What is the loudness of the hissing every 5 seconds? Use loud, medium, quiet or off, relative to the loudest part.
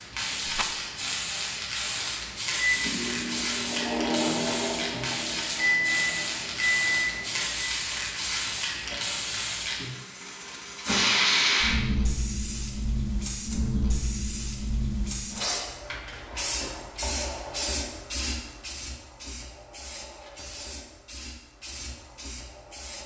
loud, loud, loud, medium, quiet.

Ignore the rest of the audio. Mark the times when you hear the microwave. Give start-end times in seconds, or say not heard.
2.5-7.7.